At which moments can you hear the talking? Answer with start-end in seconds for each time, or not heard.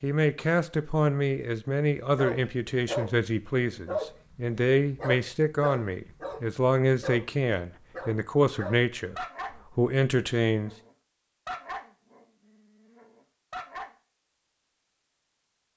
0.0-10.7.